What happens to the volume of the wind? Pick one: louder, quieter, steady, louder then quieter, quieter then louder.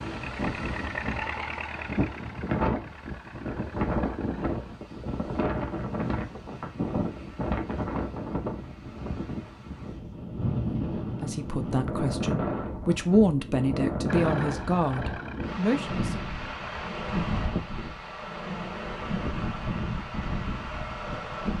steady.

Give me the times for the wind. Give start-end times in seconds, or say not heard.
0.0-21.5.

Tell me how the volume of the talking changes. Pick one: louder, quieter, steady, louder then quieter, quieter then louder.
louder then quieter.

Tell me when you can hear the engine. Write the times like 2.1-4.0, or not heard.
0.0-4.8, 14.1-16.9.